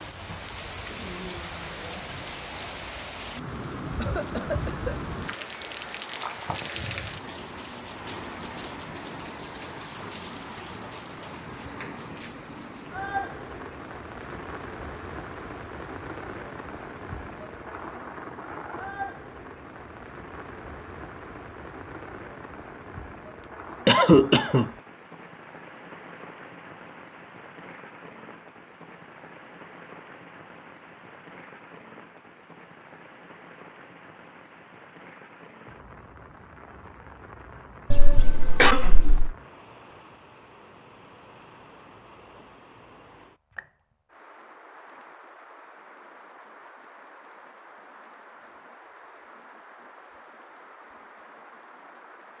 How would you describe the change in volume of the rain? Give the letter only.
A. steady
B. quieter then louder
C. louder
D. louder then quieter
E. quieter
E.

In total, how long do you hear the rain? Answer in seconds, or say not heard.
52 s.